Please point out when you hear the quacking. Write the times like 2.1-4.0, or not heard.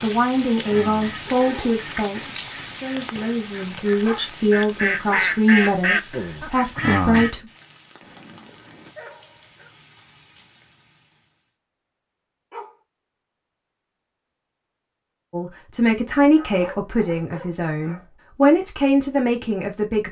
0.5-7.3.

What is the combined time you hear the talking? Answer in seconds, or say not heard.
12 s.